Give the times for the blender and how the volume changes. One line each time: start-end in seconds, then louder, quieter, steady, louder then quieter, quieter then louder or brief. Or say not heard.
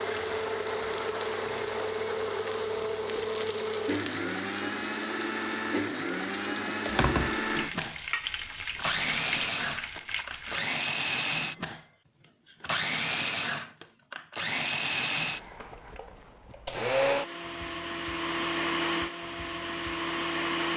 0.0-20.7 steady.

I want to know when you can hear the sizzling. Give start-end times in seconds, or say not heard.
0.0-10.7.